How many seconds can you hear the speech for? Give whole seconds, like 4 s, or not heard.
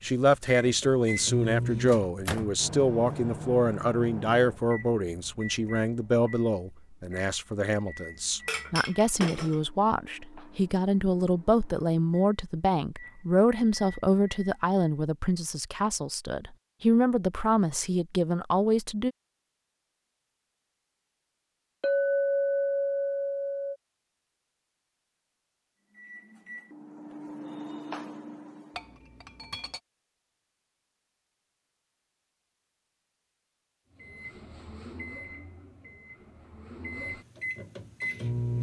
19 s.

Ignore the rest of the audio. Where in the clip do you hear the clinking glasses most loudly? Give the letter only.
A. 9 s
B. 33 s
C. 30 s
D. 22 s
D.